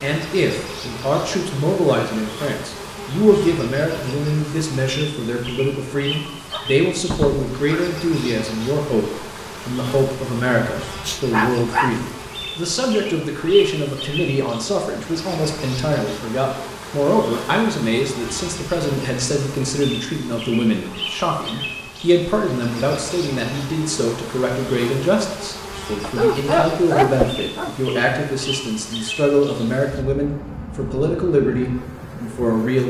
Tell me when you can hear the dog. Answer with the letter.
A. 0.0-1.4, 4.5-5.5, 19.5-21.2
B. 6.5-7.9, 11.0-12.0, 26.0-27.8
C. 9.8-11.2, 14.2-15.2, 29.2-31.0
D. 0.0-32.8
B.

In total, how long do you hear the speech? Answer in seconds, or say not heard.
33 s.